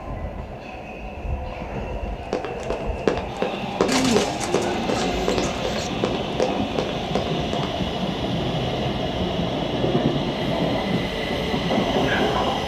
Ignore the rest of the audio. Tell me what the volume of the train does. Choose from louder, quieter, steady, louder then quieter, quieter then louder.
louder.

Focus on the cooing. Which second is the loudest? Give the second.
4 s.